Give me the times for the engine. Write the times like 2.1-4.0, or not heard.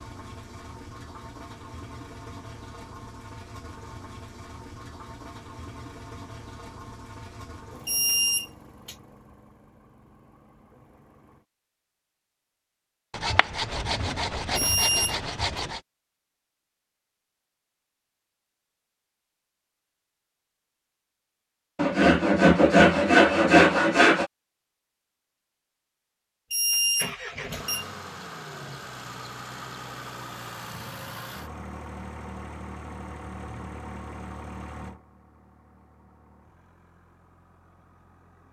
0.0-11.4, 26.8-38.4.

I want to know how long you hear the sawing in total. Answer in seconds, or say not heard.
5 s.